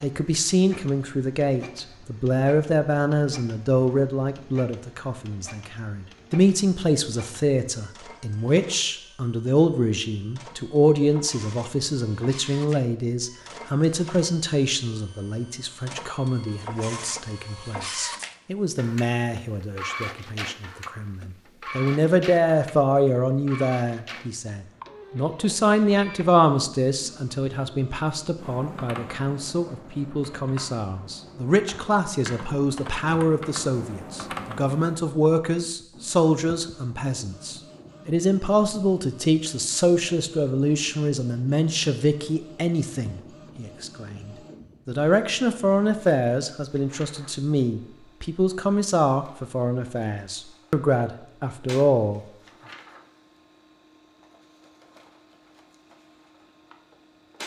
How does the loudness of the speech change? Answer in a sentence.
The loudness of the speech stays about the same.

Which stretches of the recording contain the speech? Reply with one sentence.
The speech can be heard from 0.0 to 52.2 s.